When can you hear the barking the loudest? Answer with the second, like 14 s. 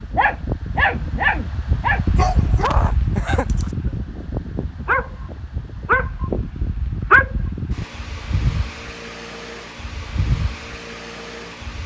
7 s.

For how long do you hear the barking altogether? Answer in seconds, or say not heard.
7 s.